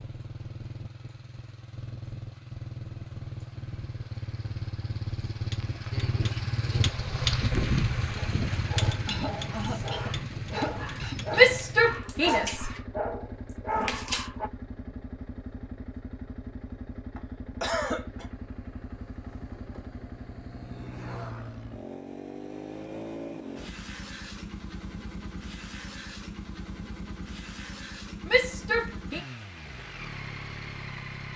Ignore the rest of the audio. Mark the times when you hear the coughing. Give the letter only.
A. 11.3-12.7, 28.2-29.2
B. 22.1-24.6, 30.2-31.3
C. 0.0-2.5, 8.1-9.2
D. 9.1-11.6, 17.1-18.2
D.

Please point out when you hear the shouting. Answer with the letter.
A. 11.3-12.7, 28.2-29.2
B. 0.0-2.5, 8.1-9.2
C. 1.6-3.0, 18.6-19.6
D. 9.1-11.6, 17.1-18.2
A.